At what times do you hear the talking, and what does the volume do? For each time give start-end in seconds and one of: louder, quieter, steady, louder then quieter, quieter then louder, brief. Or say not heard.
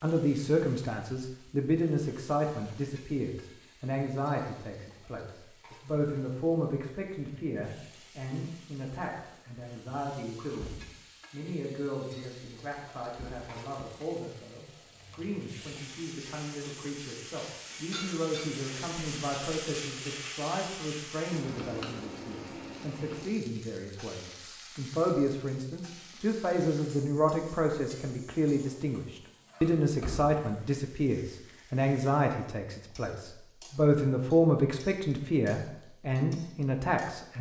0.0-37.3 quieter then louder.